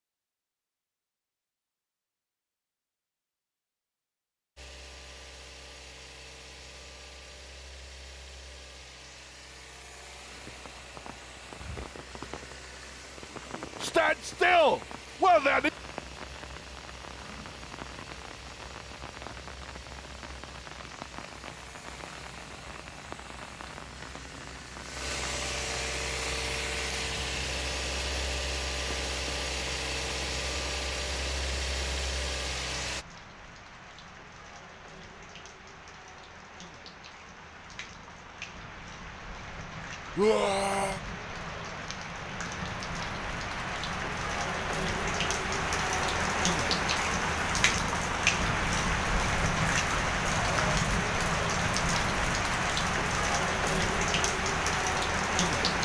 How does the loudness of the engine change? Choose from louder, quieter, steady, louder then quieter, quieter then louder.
louder.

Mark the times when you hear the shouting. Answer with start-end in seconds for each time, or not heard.
13.8-15.7, 40.1-41.0.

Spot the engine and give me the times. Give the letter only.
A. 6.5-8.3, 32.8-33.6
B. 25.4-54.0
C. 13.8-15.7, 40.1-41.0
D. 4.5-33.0
D.